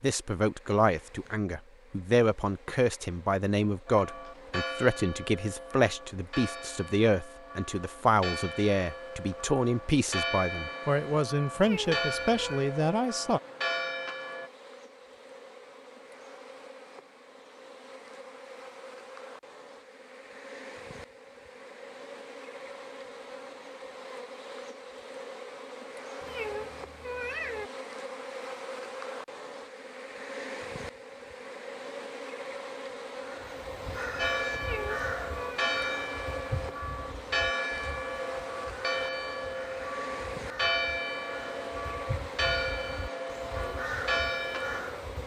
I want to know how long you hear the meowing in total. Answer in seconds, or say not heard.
4 s.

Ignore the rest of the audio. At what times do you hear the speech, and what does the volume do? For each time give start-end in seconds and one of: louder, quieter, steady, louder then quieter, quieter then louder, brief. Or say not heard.
0.0-13.4 steady.